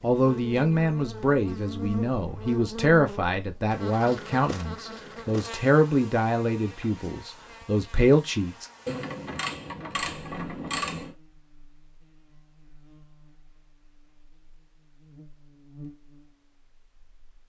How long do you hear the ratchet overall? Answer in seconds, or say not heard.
2 s.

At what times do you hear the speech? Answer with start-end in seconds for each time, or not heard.
0.0-8.7.